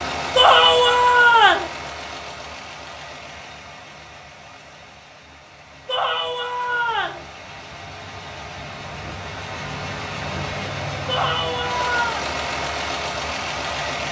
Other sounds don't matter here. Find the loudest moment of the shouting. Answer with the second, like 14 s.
1 s.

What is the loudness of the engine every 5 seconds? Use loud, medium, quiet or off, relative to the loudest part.
medium, medium, loud.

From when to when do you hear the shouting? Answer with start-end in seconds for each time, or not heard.
0.3-1.7, 5.8-7.2, 11.1-12.2.